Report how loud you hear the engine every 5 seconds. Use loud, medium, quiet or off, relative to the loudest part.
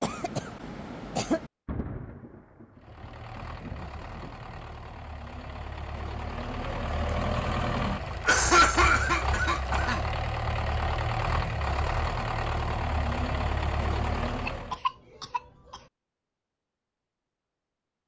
quiet, loud, loud, off.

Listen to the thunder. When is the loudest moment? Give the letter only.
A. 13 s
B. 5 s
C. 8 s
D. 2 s
D.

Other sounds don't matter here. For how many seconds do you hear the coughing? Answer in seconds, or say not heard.
5 s.